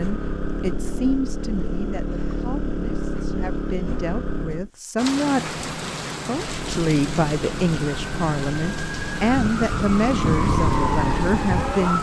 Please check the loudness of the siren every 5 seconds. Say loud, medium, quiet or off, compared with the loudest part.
off, medium, loud.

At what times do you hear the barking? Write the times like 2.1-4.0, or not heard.
not heard.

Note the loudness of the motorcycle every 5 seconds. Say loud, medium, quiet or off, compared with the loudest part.
loud, medium, loud.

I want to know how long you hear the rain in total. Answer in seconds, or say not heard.
7 s.